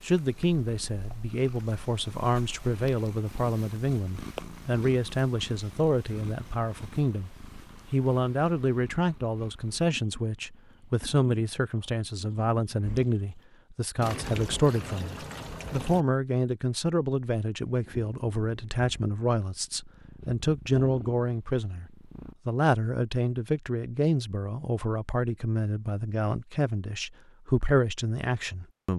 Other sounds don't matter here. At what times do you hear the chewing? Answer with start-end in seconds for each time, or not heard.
not heard.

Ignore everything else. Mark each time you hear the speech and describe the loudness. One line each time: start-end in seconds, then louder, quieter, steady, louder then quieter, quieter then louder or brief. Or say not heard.
0.0-28.9 steady.